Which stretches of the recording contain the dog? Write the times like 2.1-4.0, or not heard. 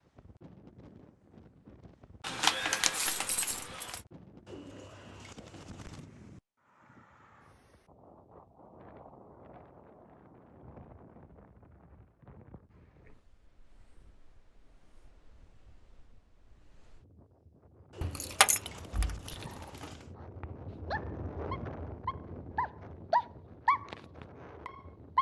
20.4-25.1.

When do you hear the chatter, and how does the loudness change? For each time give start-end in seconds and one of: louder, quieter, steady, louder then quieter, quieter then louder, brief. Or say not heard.
not heard.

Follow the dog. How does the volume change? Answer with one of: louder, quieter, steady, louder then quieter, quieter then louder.
louder then quieter.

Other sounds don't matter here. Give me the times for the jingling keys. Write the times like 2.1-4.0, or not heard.
2.2-4.0, 18.0-19.9.